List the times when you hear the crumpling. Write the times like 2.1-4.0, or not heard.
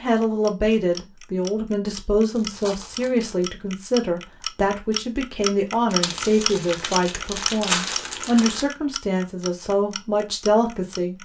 2.4-3.2, 5.9-8.7.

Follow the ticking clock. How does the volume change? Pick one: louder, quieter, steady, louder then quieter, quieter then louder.
louder then quieter.